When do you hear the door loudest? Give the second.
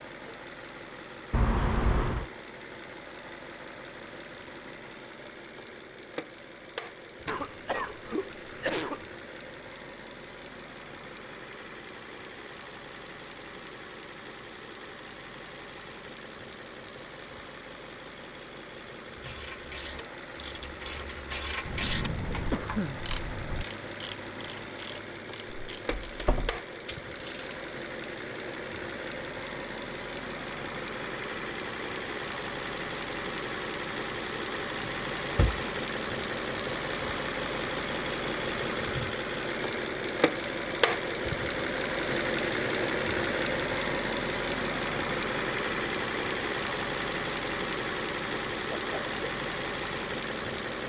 2 s.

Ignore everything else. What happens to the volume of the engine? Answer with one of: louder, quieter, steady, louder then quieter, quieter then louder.
louder.